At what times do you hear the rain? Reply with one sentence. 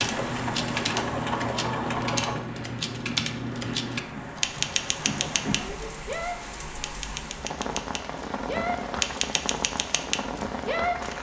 The rain can be heard from 0.0 to 11.1 s.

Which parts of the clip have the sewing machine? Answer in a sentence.
You can hear the sewing machine from 0.0 to 2.5 s.